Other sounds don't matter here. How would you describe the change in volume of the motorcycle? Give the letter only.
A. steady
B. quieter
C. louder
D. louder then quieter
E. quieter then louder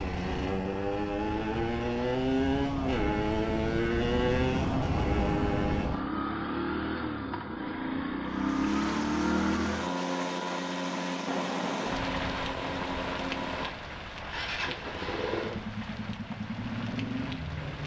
B.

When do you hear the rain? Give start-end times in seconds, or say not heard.
8.2-17.8.